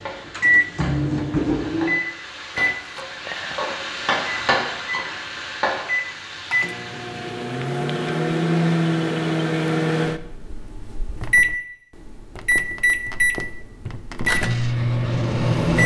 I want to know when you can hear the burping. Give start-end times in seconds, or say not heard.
not heard.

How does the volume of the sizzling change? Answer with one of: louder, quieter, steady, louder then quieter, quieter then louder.
louder then quieter.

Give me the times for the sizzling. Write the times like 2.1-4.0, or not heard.
0.0-7.7.